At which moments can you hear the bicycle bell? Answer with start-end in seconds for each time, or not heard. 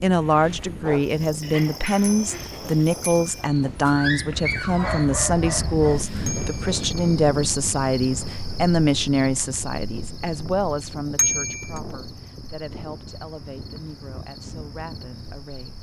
1.9-3.5, 6.2-7.2, 11.2-11.8.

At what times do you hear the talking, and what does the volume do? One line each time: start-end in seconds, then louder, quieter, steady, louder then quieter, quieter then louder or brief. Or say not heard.
0.0-15.7 quieter.